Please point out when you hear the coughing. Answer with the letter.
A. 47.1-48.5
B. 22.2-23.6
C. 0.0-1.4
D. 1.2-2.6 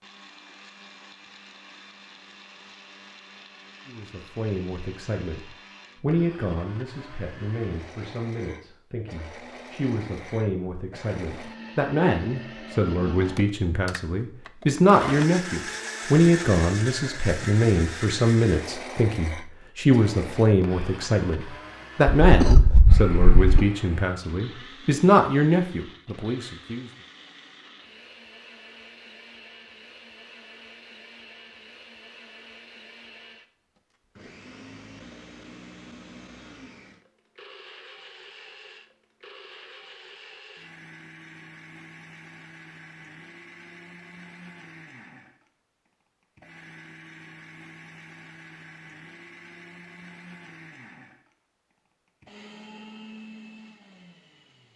B.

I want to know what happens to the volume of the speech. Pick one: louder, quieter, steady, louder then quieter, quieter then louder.
louder.